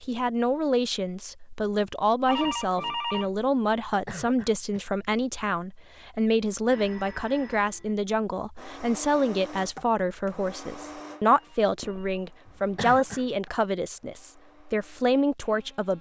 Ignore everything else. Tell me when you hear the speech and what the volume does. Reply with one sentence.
The speech can be heard from 0.0 to 15.9 s, at a steady volume.